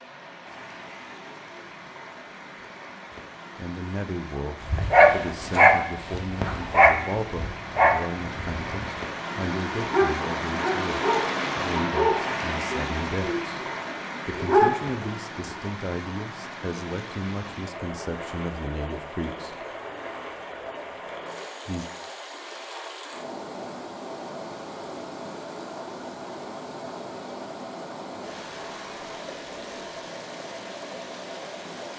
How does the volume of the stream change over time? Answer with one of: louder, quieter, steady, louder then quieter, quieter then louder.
louder then quieter.